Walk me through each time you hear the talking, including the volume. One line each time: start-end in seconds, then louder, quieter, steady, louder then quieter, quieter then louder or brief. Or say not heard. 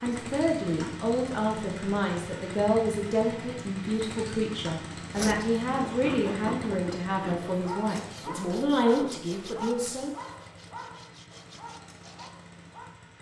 0.0-10.2 steady.